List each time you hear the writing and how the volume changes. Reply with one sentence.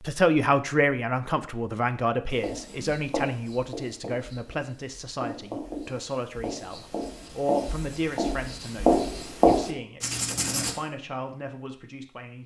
You can hear the writing from 2.3 to 10.8 s, getting louder.